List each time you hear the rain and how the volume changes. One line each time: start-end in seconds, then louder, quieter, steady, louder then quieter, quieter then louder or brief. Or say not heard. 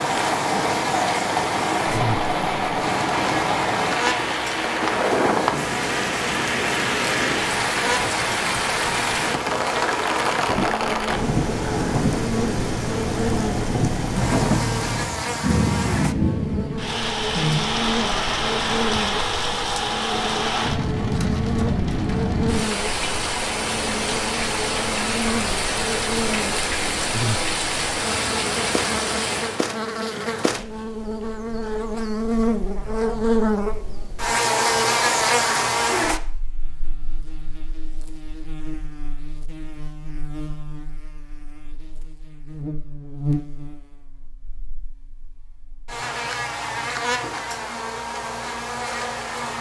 0.0-29.6 steady.